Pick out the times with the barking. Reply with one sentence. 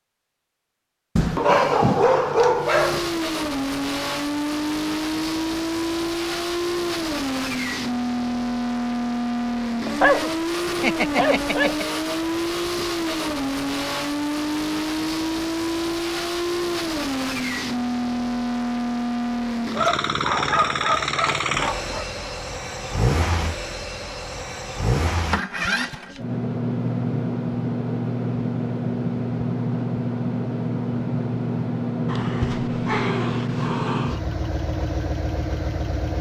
The barking can be heard from 1.1 to 3.2 s, from 9.8 to 11.8 s, from 19.7 to 22.1 s and from 32.0 to 34.2 s.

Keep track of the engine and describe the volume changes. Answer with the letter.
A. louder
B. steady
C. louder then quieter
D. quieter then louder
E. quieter
B.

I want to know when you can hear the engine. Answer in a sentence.
You can hear the engine from 2.5 to 36.1 s.